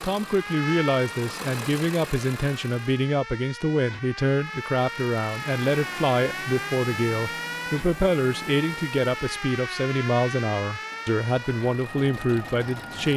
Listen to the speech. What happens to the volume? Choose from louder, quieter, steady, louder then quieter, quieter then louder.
steady.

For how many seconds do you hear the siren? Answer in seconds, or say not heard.
13 s.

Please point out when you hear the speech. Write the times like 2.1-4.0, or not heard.
0.0-13.1.